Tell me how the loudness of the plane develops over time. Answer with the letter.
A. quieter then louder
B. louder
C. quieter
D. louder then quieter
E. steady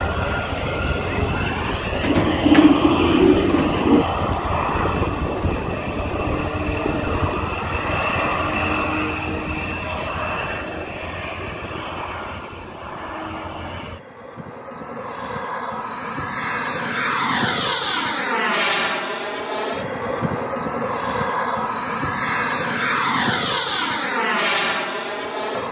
A.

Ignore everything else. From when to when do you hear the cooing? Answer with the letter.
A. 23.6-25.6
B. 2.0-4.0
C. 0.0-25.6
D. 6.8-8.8
B.